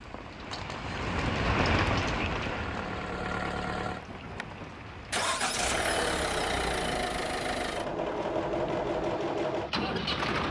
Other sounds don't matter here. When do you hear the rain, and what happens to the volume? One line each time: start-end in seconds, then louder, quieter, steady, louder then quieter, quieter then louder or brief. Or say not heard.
0.0-10.2 quieter.